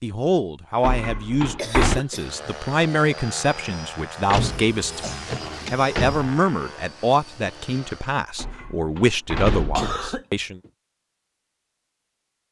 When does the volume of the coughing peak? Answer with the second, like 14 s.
10 s.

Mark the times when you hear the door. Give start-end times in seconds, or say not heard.
0.8-2.0, 4.3-6.2, 8.3-9.9.